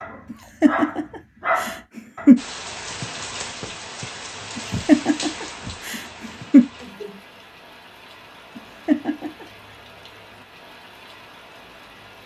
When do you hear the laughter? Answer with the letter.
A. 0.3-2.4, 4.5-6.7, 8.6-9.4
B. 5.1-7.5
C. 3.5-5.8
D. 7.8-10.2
A.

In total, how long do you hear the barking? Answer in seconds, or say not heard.
2 s.